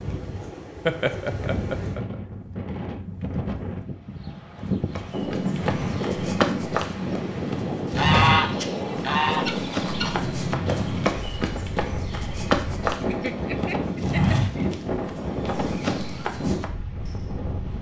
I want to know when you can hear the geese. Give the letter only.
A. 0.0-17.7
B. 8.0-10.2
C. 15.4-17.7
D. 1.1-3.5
B.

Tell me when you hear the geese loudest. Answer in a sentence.
The loudest moment of the geese is at 8 seconds.